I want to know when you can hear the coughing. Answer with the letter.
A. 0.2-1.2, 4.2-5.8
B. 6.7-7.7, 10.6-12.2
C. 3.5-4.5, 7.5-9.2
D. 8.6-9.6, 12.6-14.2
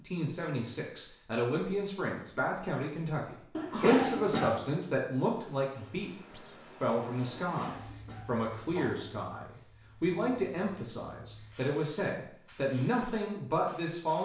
C.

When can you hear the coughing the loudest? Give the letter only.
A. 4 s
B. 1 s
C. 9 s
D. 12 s
A.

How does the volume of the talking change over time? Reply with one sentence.
The loudness of the talking stays about the same.